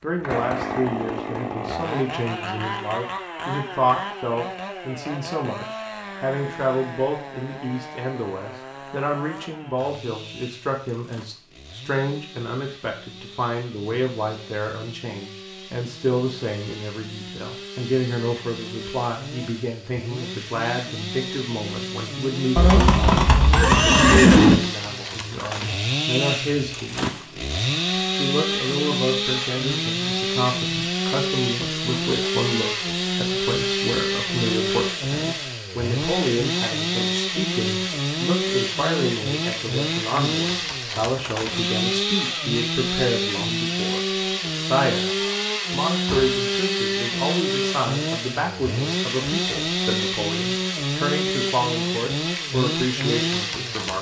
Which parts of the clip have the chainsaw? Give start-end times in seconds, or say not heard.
0.0-53.9.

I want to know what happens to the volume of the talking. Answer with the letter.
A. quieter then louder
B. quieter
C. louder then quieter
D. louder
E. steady
E.